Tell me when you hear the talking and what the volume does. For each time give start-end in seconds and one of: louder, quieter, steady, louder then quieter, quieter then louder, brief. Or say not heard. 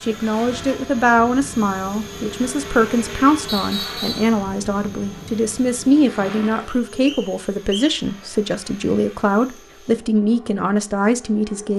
0.0-11.7 steady.